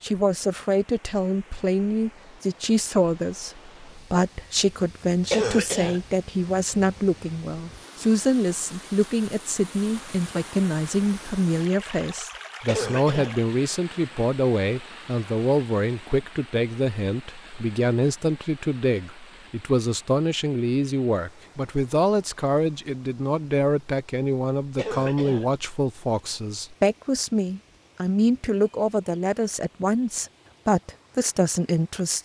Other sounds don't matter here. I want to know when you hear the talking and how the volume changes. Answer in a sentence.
You can hear the talking from 0.0 to 32.2 s, at a steady volume.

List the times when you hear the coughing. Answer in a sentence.
The coughing can be heard from 5.3 to 6.0 s, from 12.7 to 13.3 s and from 24.8 to 25.5 s.